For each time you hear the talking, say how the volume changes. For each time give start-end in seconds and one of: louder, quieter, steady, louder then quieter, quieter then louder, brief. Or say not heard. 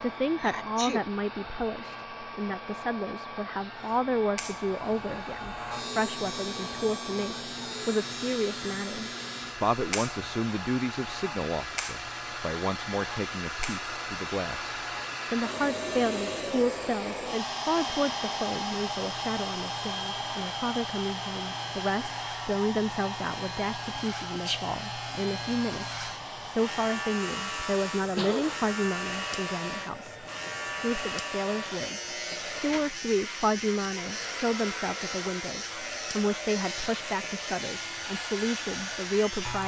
0.0-39.6 steady.